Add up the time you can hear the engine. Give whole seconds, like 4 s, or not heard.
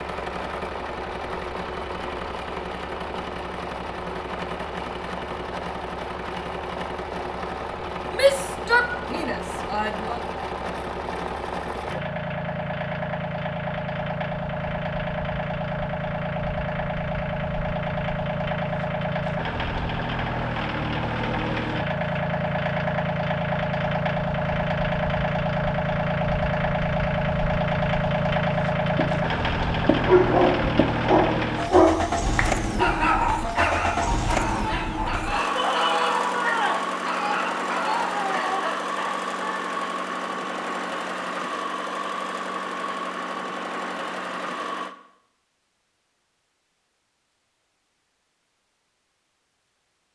45 s.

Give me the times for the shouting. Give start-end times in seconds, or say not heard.
8.1-10.2, 35.5-36.8.